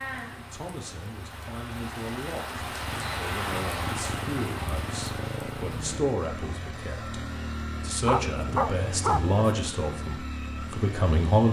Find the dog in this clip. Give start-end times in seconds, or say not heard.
8.1-9.4.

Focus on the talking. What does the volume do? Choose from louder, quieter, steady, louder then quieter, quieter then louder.
louder.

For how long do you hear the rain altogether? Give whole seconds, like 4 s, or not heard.
6 s.